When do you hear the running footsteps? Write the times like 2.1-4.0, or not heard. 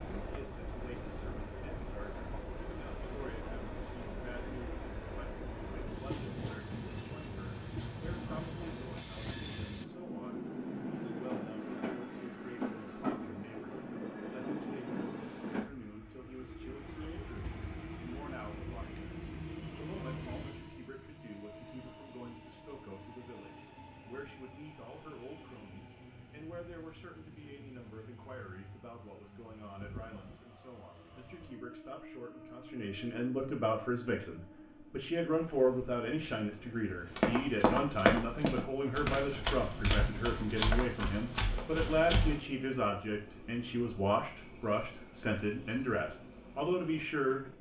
37.0-42.4.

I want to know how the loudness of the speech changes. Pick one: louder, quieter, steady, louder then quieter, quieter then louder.
louder.